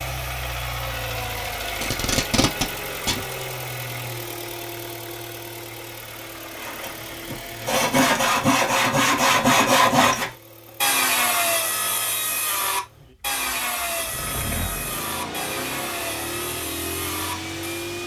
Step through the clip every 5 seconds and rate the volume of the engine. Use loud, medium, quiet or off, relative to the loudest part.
loud, medium, medium, loud.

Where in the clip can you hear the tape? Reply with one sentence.
You can hear the tape from 1.8 to 3.2 s.